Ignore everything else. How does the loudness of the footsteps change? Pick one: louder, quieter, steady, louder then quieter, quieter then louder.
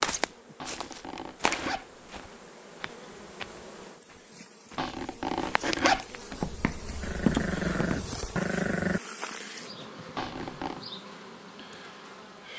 quieter then louder.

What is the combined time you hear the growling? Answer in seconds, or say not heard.
2 s.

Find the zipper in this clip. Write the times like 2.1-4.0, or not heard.
0.6-2.3, 4.8-6.5, 10.2-10.8.